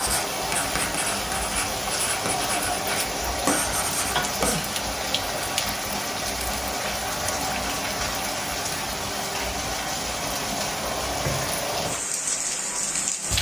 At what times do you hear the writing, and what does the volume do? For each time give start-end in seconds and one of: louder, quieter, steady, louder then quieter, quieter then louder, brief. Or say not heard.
0.0-4.6 quieter then louder.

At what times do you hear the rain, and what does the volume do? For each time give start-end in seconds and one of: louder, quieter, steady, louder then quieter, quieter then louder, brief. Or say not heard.
0.0-13.3 steady.